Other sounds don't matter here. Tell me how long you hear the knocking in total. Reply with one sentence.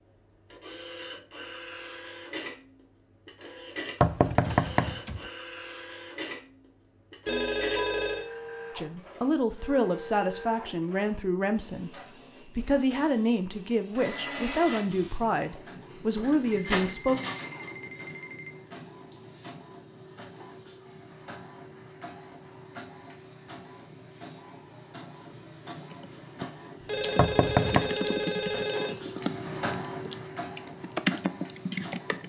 The knocking can be heard for 2 seconds in total.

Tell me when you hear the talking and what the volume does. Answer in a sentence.
You can hear the talking from 8.8 to 17.2 s, at a steady volume.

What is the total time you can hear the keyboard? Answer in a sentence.
The keyboard can be heard for 6 seconds in total.